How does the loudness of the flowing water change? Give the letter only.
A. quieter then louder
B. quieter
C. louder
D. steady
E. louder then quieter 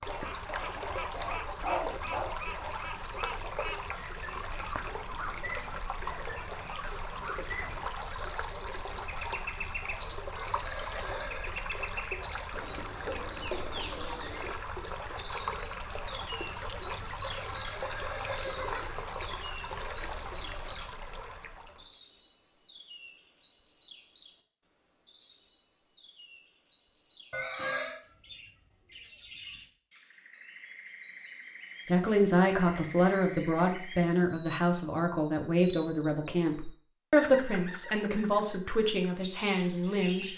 D.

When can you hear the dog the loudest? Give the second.
2 s.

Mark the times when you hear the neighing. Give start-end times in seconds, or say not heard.
10.3-11.5, 17.4-19.1, 27.3-27.9.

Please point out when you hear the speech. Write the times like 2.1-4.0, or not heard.
31.9-40.3.